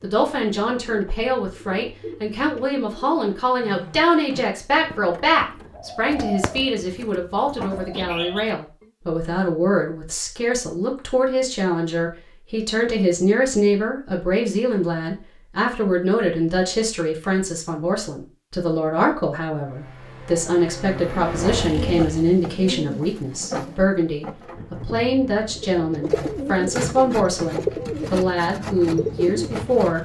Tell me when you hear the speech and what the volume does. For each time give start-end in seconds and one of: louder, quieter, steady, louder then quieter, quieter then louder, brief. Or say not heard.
0.0-30.0 steady.